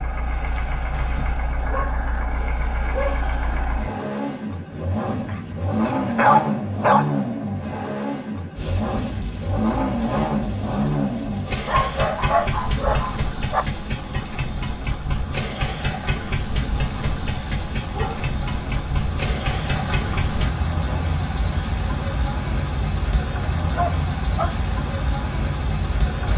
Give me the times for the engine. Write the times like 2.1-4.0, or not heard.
0.0-20.5.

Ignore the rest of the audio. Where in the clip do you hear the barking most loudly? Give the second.
6 s.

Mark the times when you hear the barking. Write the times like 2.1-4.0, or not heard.
1.6-3.2, 5.2-7.1, 11.7-13.7, 17.9-18.4, 23.7-24.6.